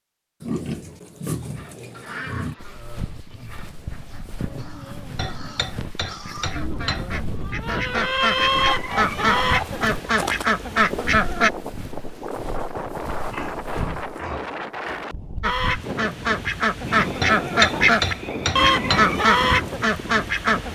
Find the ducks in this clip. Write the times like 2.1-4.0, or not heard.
1.4-11.5, 15.4-20.7.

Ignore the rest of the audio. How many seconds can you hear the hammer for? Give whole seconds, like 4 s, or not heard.
4 s.